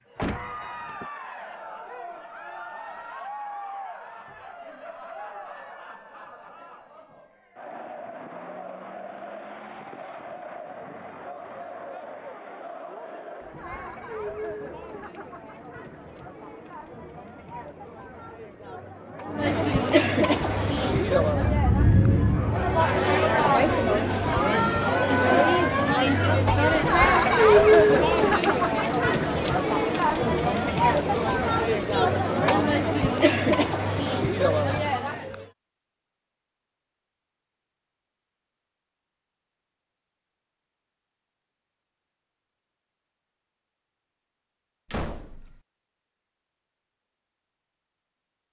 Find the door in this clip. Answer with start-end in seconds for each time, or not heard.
0.1-1.1, 44.9-45.6.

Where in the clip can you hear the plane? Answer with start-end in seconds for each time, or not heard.
20.4-23.1.